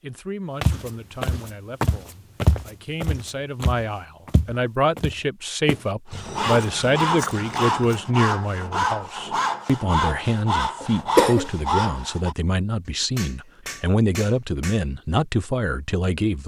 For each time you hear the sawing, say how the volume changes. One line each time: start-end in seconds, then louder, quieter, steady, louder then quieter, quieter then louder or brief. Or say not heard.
6.1-12.3 steady.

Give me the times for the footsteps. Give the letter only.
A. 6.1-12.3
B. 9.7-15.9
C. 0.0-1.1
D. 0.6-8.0
D.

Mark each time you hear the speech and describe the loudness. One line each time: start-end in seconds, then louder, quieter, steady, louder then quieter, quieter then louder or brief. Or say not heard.
0.0-16.4 louder.